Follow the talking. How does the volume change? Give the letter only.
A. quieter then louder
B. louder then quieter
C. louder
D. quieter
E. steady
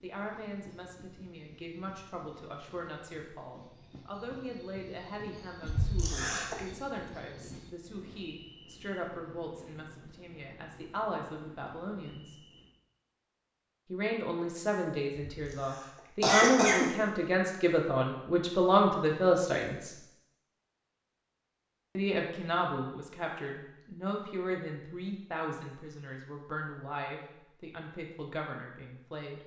B.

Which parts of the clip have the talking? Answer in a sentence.
The talking can be heard from 0.0 to 12.3 s, from 13.9 to 19.9 s and from 21.9 to 29.4 s.